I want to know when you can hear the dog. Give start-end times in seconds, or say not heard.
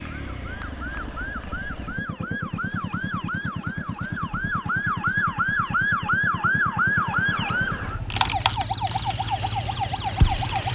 not heard.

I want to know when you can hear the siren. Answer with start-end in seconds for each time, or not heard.
0.1-10.6.